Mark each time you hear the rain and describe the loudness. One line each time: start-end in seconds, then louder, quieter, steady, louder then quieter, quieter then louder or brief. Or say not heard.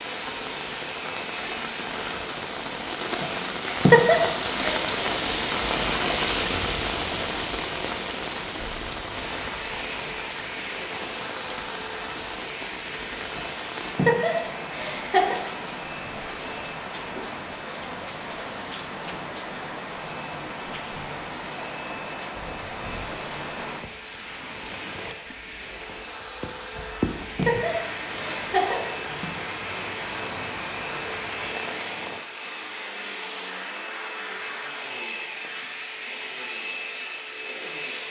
0.0-32.2 quieter.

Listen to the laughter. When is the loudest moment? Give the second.
4 s.